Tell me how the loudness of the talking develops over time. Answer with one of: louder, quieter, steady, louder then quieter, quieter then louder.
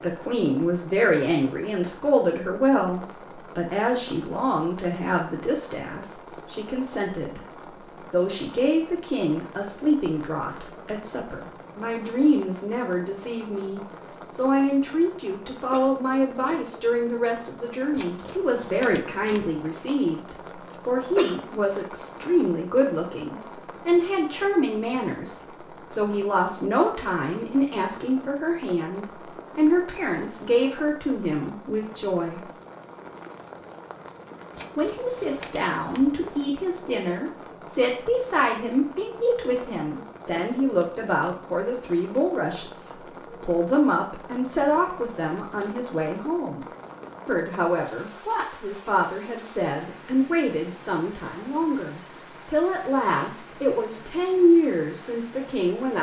steady.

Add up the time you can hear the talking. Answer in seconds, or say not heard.
53 s.